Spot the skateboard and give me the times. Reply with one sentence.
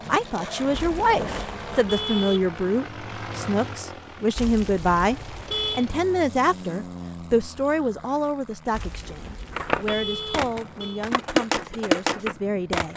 The skateboard can be heard from 0.0 to 1.9 s and from 9.5 to 12.9 s.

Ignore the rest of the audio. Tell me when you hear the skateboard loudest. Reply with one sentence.
The volume of the skateboard peaks at 12 seconds.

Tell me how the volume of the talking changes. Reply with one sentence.
The volume of the talking goes down.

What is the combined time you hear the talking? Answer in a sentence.
The talking can be heard for 13 seconds in total.